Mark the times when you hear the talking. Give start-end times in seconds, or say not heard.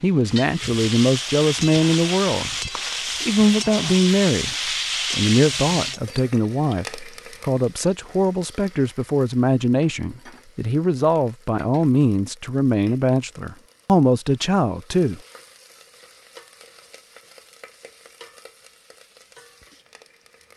0.0-15.2.